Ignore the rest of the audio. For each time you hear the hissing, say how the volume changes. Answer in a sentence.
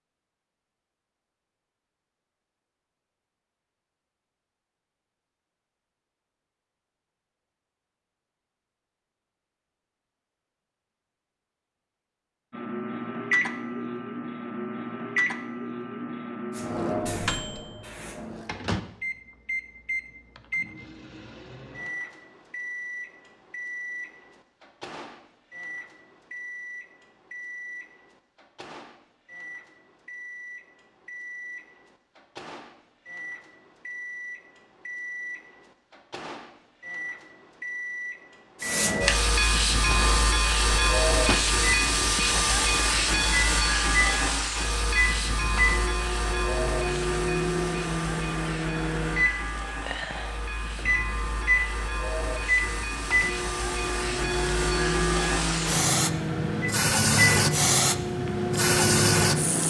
You can hear the hissing briefly from 16.6 to 18.5 s; and from 38.6 to 59.6 s, getting quieter then louder.